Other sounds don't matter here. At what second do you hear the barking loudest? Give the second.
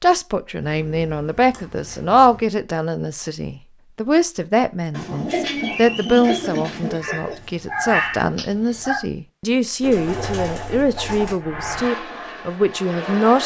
8 s.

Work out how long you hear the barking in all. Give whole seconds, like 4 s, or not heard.
3 s.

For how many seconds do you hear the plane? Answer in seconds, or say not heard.
2 s.